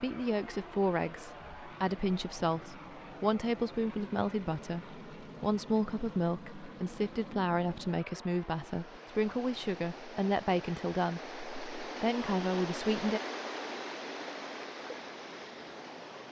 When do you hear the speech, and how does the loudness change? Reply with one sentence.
You can hear the speech from 0.0 to 13.2 s, at a steady volume.